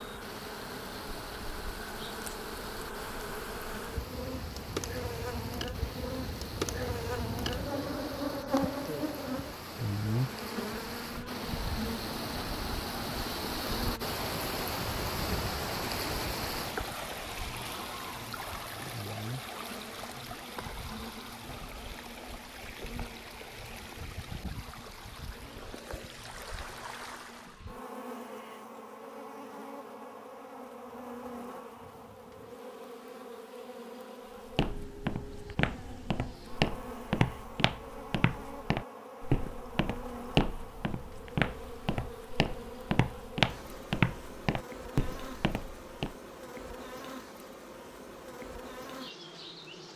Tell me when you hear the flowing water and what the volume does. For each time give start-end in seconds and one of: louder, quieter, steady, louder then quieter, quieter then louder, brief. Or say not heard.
0.0-27.6 louder then quieter.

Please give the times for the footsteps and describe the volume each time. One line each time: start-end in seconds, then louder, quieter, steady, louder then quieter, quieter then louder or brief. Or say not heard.
34.5-46.1 steady.